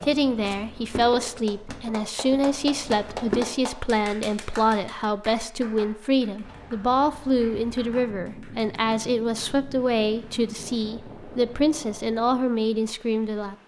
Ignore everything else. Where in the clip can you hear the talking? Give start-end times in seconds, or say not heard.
0.0-13.6.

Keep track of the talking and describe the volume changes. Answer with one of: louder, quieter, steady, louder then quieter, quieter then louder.
steady.